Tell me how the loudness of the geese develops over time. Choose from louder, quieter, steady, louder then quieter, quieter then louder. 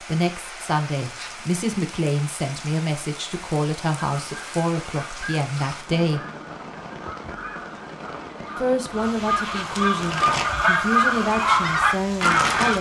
louder.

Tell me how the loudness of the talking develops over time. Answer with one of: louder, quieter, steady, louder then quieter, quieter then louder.
steady.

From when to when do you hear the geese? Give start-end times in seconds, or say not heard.
4.0-12.7.